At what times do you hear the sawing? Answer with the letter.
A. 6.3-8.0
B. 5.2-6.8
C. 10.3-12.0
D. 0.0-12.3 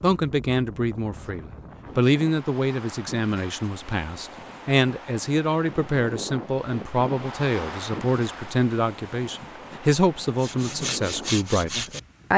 C.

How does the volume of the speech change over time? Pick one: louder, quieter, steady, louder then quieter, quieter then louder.
steady.